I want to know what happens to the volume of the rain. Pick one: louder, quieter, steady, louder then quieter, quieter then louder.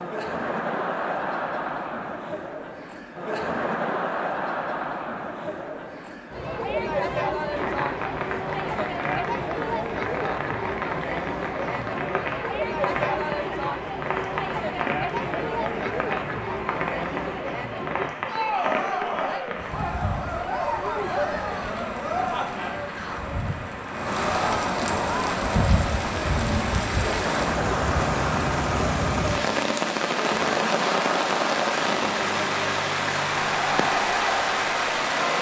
louder.